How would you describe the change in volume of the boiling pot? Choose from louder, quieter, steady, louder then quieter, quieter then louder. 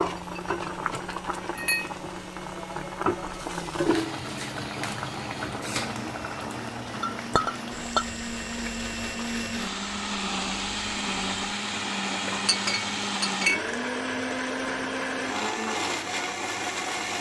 quieter.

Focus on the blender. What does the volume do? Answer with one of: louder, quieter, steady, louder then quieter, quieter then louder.
louder.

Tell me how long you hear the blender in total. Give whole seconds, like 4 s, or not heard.
17 s.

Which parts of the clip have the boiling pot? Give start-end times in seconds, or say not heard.
0.0-17.1.